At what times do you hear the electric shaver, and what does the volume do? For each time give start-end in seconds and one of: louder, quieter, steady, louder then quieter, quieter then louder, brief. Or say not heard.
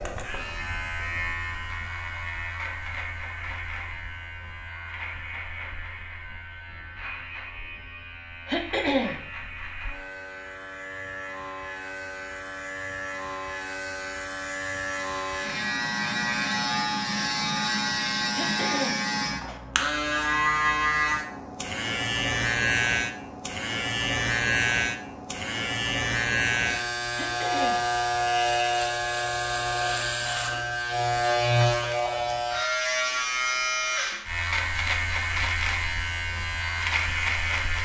0.0-37.8 louder.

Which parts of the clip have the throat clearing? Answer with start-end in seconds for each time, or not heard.
8.4-9.2, 18.3-19.1, 27.1-27.9.